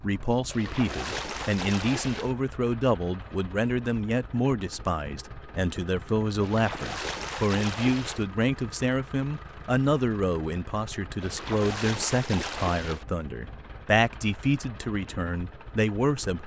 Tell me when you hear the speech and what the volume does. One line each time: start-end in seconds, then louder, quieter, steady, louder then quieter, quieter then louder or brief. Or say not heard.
0.0-16.4 steady.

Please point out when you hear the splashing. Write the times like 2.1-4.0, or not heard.
0.5-2.4, 6.4-8.2, 11.2-13.1.